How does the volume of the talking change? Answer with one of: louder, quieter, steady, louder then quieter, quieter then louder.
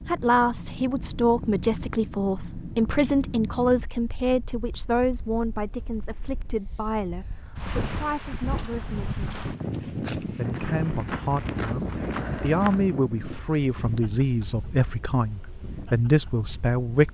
quieter then louder.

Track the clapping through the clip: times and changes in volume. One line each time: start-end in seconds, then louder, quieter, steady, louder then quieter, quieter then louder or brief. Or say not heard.
not heard.